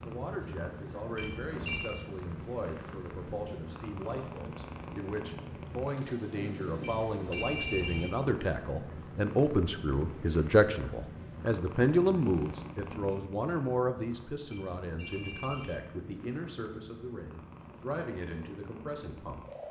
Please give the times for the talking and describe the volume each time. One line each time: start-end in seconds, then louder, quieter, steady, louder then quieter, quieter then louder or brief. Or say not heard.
0.0-19.6 louder then quieter.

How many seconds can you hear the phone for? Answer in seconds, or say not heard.
3 s.